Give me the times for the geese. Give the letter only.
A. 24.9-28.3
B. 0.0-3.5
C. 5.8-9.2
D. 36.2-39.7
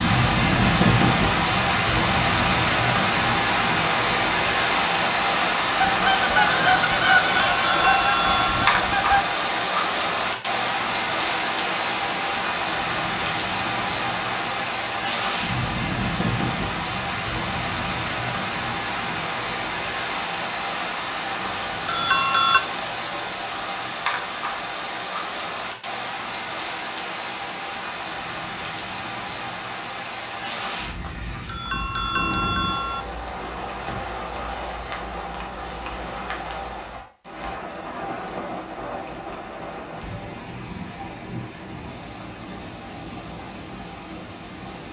C.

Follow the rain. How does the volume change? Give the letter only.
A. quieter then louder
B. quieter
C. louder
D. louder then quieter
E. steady
B.